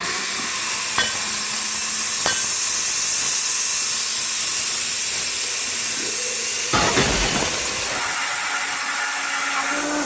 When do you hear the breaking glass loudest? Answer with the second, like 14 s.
7 s.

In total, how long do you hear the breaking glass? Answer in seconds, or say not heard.
3 s.